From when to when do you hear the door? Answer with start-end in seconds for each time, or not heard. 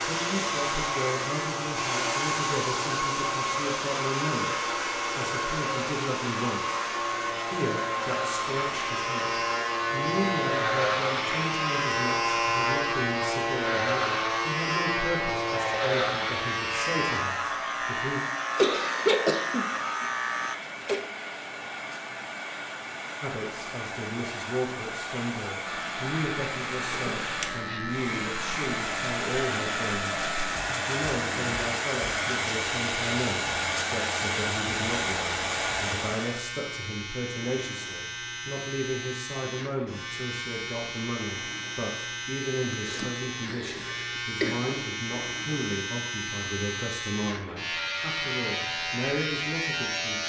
not heard.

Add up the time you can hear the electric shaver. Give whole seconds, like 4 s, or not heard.
45 s.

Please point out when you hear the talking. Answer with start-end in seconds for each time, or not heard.
0.0-4.5, 5.2-18.2, 23.2-50.2.